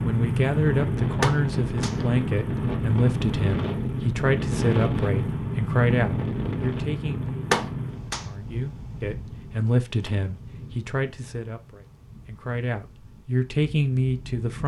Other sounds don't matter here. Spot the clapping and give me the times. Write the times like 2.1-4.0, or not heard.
1.2-1.9, 7.5-8.2.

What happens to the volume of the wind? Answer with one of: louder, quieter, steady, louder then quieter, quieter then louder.
quieter.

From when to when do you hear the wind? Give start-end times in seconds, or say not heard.
0.0-14.6.